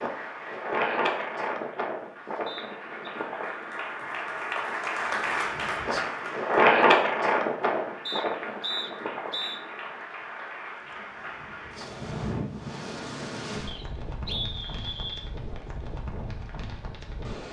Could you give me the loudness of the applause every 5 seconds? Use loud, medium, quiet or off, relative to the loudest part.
loud, loud, medium, off.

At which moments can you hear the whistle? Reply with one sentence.
The whistle can be heard from 2.5 to 3.1 s, from 8.1 to 9.6 s and from 13.7 to 15.2 s.